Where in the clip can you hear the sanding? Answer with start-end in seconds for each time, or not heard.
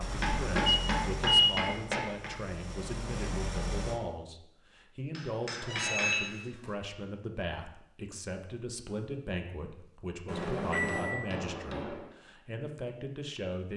not heard.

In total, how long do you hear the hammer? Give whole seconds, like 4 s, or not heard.
5 s.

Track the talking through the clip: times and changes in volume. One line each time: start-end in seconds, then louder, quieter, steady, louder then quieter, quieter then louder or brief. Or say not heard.
0.0-13.7 steady.